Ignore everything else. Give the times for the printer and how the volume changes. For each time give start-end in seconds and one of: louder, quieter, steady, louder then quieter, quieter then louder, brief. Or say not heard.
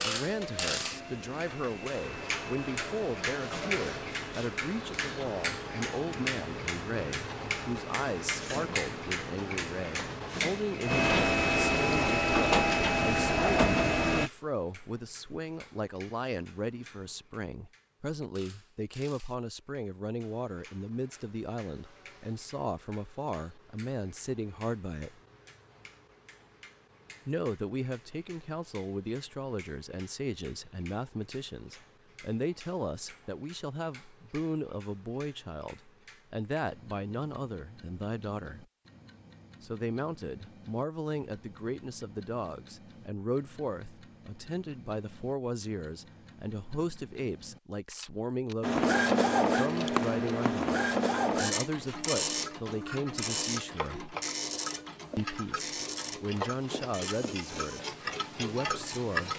0.0-14.3 louder
48.6-59.3 quieter.